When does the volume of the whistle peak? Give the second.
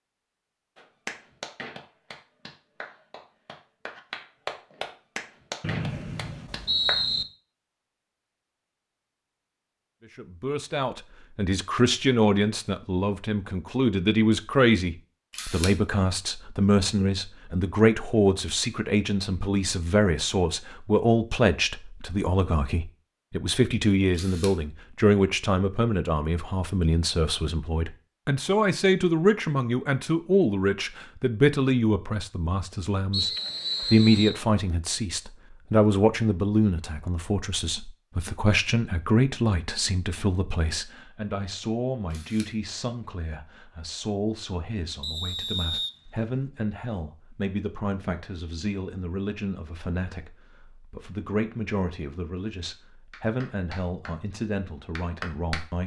7 s.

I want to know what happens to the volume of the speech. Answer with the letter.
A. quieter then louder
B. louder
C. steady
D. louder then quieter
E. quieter
E.